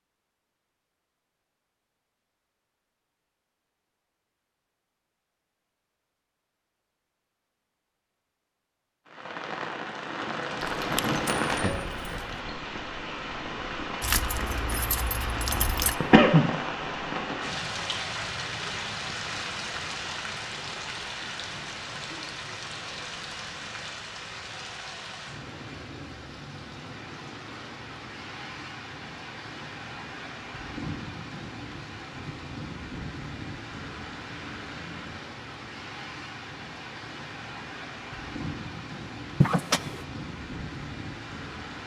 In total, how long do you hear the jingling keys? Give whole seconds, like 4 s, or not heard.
4 s.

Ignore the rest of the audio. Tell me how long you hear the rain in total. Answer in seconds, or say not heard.
33 s.